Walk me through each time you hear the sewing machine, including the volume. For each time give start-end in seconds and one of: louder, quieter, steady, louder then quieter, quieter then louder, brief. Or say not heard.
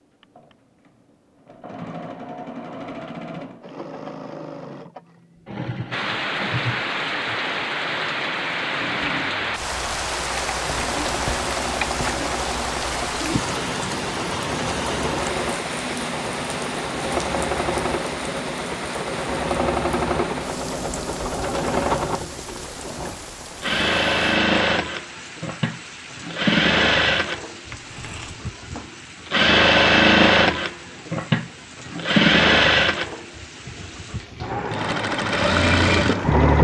0.2-36.5 louder.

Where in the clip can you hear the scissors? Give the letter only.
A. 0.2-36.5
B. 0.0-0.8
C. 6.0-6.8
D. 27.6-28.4
D.